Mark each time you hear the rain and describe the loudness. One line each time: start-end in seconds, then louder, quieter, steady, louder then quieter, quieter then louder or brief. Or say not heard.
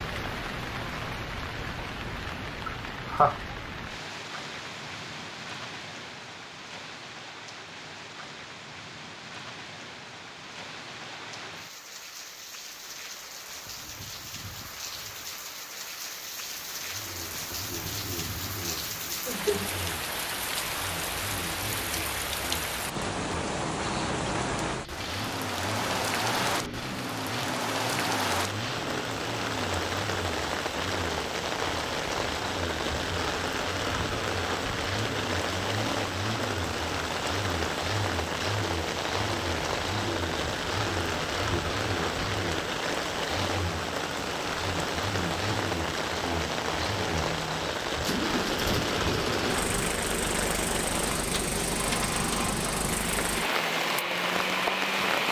0.0-55.2 louder.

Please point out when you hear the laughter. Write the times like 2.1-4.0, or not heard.
2.6-3.4.